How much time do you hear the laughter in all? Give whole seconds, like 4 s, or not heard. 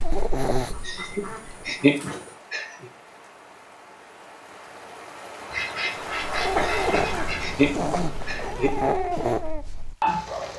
4 s.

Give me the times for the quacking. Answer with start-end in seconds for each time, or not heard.
0.7-2.4, 5.5-7.5.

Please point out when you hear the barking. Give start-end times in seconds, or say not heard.
0.0-1.9, 6.2-10.5.